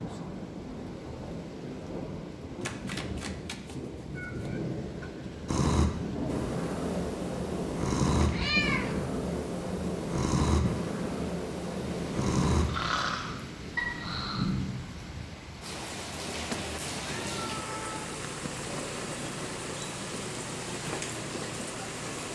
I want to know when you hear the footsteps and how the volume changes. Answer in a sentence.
You can't hear the footsteps here.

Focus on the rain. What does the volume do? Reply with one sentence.
The volume of the rain stays about the same.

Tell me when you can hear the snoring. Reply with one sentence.
The snoring can be heard from 5.5 to 14.4 s.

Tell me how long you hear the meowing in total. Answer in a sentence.
The meowing can be heard for 4 seconds in total.